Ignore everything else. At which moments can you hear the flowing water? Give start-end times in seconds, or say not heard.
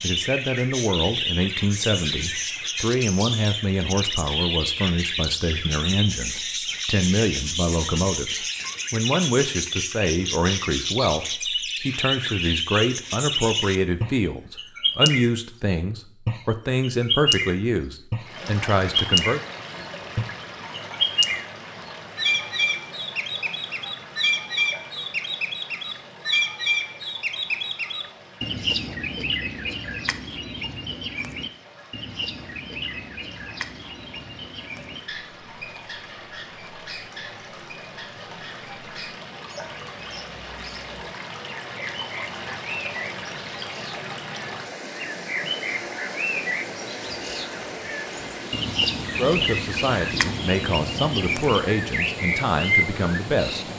18.2-53.7.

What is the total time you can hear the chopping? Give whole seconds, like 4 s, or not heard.
not heard.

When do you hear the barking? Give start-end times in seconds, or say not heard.
not heard.